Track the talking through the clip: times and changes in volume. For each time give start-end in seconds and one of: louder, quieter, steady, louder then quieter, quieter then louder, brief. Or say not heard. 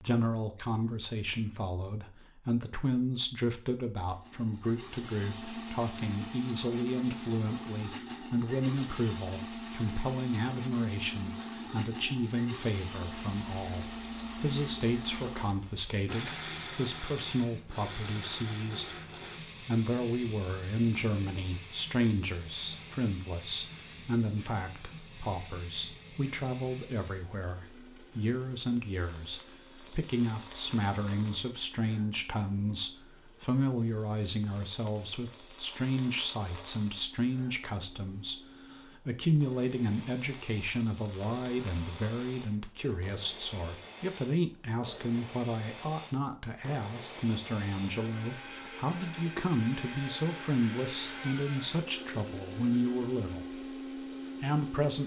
0.0-53.5 steady
54.4-55.0 brief.